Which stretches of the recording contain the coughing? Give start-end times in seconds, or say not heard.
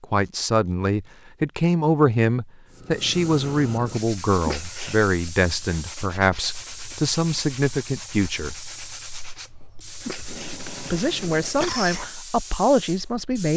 4.5-5.1, 10.1-12.1.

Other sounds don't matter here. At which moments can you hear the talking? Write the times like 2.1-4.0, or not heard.
0.0-8.6, 10.8-13.5.